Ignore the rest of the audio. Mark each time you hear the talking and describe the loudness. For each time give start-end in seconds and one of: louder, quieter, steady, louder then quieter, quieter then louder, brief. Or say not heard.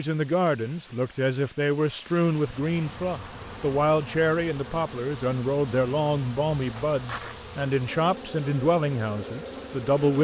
0.0-10.1 steady.